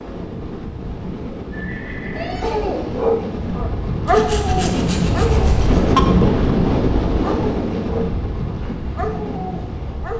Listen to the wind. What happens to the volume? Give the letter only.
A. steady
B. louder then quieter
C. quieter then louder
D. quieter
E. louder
B.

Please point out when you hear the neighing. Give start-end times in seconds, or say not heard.
1.5-3.0.